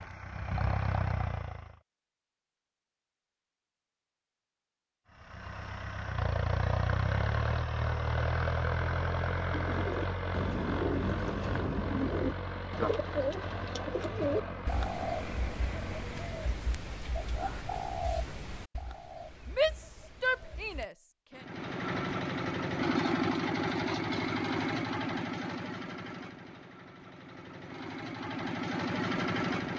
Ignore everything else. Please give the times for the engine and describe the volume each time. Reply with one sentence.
The engine can be heard briefly from 0.0 to 1.8 s; from 5.1 to 16.6 s, getting quieter; and from 21.4 to 29.7 s, getting quieter then louder.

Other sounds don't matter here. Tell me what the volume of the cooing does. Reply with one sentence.
The loudness of the cooing goes down.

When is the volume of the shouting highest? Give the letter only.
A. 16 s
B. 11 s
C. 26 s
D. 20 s
D.